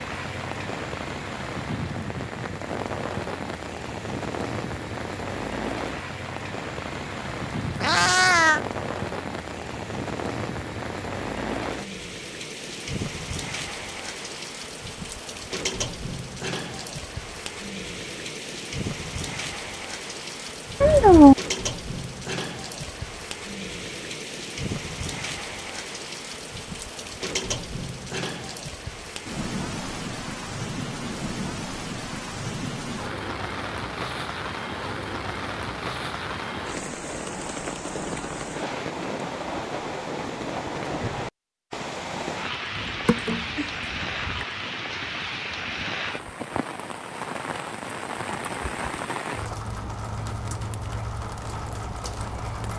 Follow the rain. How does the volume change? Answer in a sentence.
The volume of the rain stays about the same.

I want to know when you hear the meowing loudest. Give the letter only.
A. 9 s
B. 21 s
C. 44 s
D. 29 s
B.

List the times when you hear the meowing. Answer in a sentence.
You can hear the meowing from 7.7 to 8.6 s, from 20.8 to 21.4 s and from 42.8 to 44.5 s.